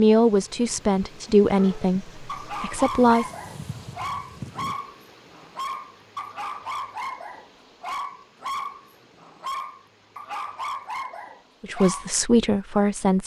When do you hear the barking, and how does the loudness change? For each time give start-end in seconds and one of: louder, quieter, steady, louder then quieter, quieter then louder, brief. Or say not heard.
1.6-12.2 steady.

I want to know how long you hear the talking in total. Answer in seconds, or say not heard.
5 s.